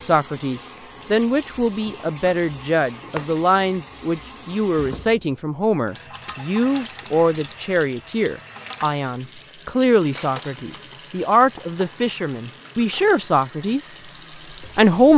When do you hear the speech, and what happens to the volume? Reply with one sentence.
The speech can be heard from 0.0 to 13.9 s, at a steady volume; and briefly from 14.6 to 15.1 s.